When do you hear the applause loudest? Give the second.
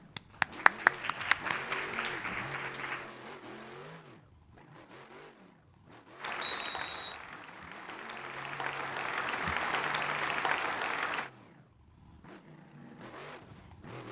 1 s.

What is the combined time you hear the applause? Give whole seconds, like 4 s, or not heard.
8 s.